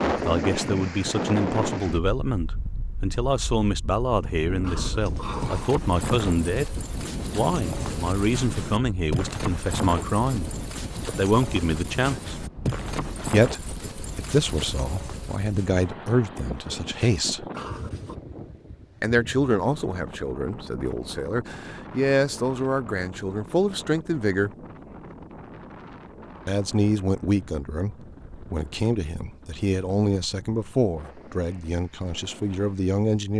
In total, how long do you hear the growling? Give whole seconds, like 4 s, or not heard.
2 s.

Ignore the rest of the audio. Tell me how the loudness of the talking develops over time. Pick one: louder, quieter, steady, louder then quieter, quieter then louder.
steady.